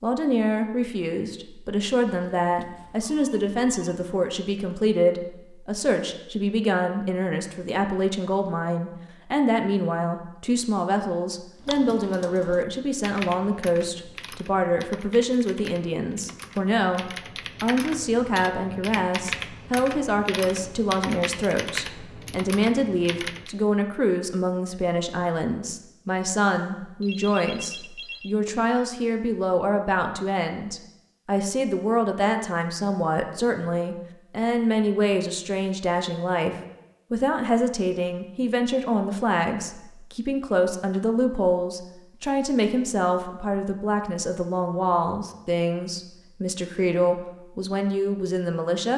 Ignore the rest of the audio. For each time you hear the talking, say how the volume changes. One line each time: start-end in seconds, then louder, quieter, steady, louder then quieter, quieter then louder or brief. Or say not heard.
0.0-48.9 steady.